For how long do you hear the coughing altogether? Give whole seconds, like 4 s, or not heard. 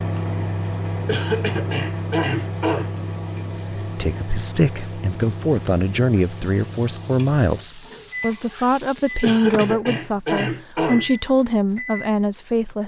4 s.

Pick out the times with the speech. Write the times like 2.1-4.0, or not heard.
4.0-12.8.